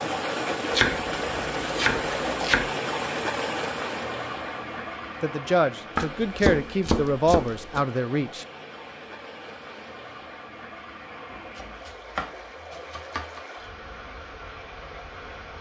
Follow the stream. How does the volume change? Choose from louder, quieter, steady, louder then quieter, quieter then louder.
quieter.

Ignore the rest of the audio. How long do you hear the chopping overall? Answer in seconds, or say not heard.
6 s.